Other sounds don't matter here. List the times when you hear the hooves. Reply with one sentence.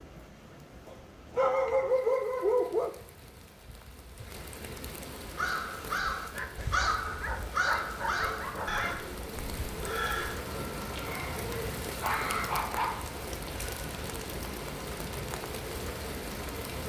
The hooves can't be heard in this clip.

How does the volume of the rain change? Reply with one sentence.
The volume of the rain goes up.